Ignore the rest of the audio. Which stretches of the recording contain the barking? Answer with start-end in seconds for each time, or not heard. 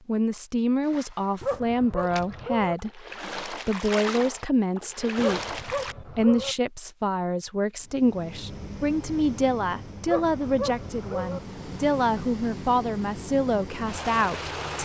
1.4-2.8, 5.2-6.5, 10.1-11.4.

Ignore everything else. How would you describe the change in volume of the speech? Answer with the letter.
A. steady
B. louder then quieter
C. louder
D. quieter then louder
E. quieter
A.